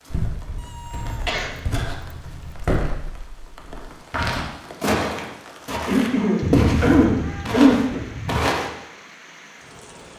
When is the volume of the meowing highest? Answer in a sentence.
The volume of the meowing peaks at 7 seconds.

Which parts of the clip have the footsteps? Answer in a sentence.
The footsteps can be heard from 0.1 to 8.7 s.